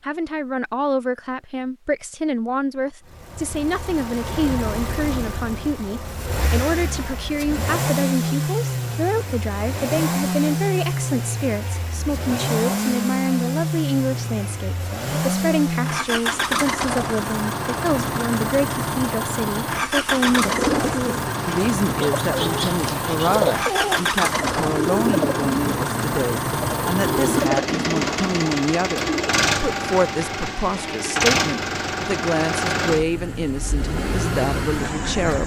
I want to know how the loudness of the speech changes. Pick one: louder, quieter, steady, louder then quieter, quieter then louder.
steady.